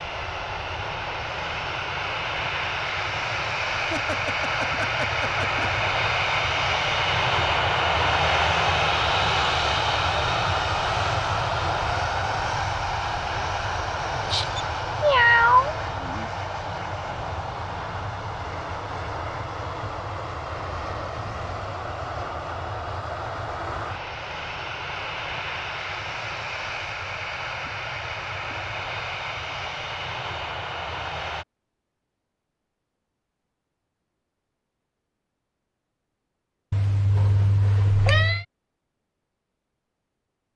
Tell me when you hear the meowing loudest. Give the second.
15 s.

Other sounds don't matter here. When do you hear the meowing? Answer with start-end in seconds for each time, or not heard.
14.3-16.2, 36.7-38.5.